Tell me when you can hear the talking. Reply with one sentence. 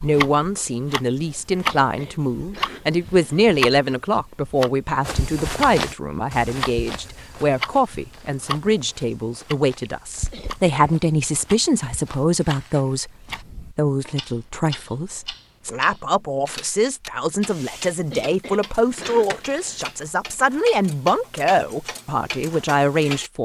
You can hear the talking from 0.0 to 23.4 s.